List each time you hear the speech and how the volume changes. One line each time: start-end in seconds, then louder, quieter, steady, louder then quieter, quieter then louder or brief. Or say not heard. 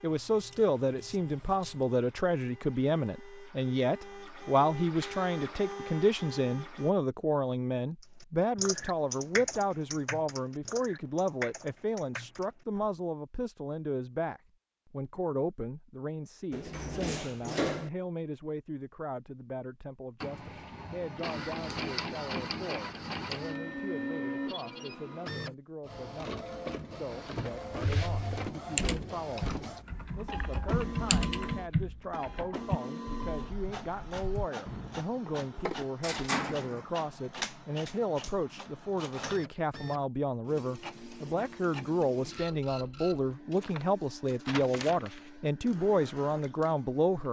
0.0-47.2 quieter then louder.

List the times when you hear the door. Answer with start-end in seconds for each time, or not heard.
16.5-17.9, 35.5-36.9.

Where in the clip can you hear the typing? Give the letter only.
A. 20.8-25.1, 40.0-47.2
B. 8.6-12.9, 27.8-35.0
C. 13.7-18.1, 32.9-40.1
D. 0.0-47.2
B.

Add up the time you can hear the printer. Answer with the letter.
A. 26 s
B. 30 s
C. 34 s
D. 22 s
C.